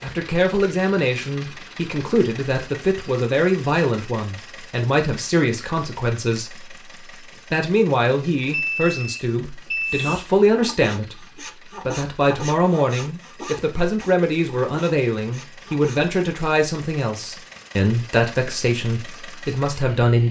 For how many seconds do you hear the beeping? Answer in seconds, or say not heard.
2 s.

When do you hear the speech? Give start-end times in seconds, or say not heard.
0.0-6.7, 7.5-11.2, 11.8-20.2.